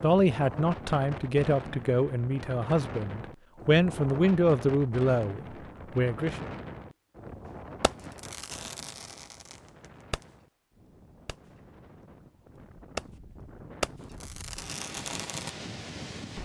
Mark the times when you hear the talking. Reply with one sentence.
The talking can be heard from 0.0 to 6.5 s.